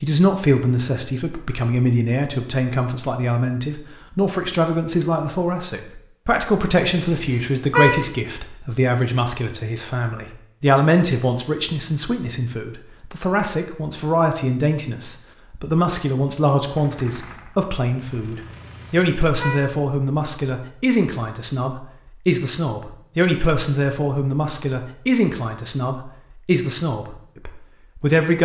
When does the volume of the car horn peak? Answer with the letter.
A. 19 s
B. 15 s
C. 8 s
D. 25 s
C.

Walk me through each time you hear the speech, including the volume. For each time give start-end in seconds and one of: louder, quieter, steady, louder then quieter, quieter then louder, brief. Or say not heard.
0.0-28.3 steady.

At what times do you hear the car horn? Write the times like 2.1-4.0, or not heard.
7.0-8.1, 18.5-19.8.